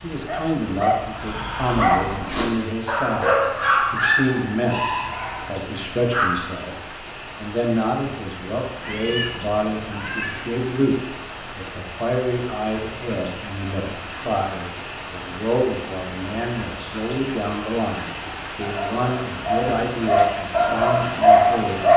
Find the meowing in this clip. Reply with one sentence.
You can hear the meowing from 8.8 to 10.5 s.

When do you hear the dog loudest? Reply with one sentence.
The loudest moment of the dog is at 21 seconds.